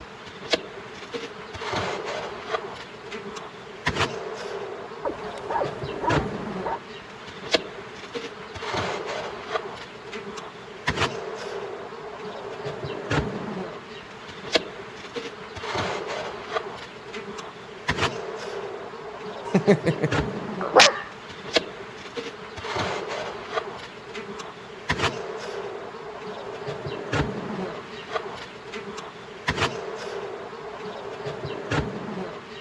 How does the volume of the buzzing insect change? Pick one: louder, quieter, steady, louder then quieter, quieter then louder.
steady.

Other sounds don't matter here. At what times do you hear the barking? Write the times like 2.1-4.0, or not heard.
5.0-6.8, 19.4-21.1.